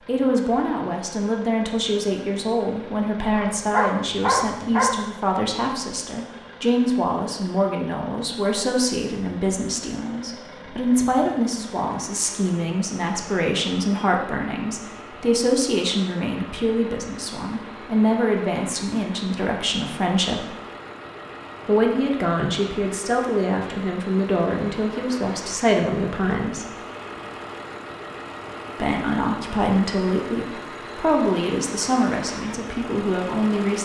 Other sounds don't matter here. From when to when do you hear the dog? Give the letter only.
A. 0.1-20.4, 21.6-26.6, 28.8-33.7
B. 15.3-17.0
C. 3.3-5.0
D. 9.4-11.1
C.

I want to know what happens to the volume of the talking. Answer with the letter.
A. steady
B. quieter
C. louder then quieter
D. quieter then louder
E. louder
A.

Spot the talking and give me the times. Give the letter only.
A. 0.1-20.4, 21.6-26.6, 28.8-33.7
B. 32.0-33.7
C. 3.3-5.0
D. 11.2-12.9
A.